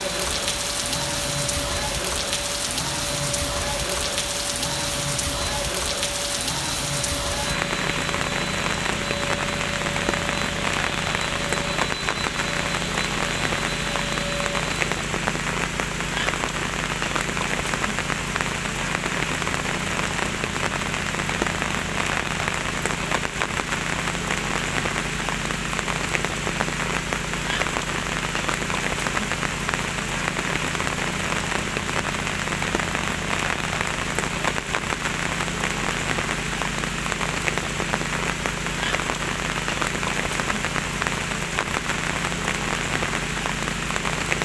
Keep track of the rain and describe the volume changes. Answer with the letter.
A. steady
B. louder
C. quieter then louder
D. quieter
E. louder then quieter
A.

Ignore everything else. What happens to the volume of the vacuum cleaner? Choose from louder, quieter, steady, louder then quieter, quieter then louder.
steady.